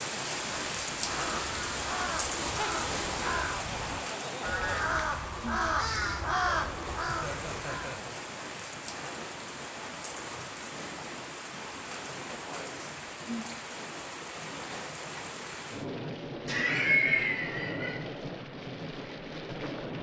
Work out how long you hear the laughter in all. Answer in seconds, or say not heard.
5 s.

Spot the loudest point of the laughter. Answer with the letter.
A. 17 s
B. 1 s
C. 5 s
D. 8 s
A.